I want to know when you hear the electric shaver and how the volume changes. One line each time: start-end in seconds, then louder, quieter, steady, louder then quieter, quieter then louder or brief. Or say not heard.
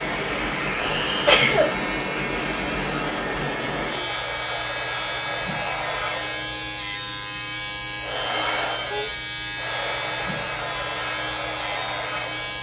0.0-12.5 steady.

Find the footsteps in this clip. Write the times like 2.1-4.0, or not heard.
not heard.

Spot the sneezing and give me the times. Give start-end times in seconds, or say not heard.
0.8-1.8.